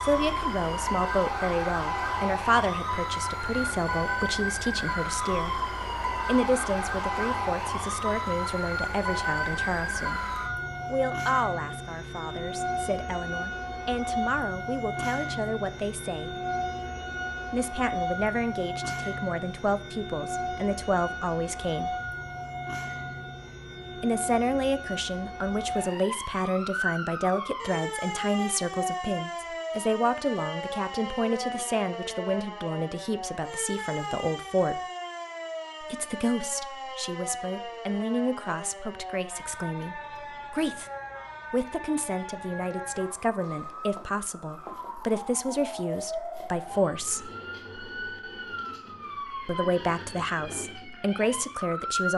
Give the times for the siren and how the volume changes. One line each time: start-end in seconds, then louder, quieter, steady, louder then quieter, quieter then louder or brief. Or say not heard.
0.0-52.1 quieter.